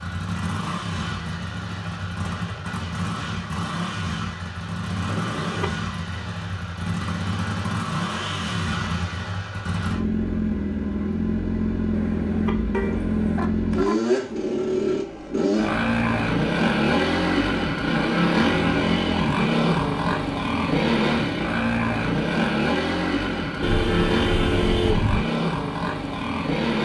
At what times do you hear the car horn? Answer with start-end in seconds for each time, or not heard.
5.0-5.7, 11.9-13.9, 23.6-25.2.